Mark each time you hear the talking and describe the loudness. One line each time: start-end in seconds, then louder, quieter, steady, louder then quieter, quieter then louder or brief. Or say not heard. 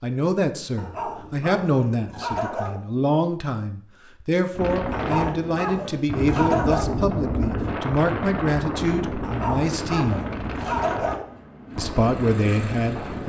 0.0-10.2 steady
11.8-13.2 brief.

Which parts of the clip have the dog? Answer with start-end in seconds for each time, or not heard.
0.8-2.8, 4.9-6.9, 9.2-11.2.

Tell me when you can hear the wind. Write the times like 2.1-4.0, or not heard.
4.5-13.2.